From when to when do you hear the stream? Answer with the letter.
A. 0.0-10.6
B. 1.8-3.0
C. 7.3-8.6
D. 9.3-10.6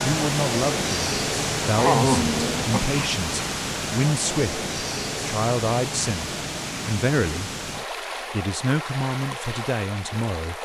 A.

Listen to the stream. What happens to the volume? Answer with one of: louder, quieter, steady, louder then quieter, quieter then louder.
quieter.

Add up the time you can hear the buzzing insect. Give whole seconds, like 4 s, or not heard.
not heard.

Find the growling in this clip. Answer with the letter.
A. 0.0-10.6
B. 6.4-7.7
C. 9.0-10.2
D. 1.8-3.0
D.